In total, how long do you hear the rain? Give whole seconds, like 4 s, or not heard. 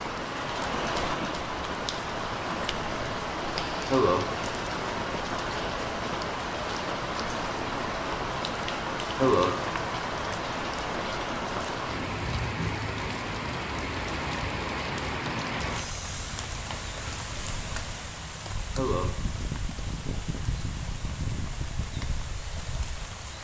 23 s.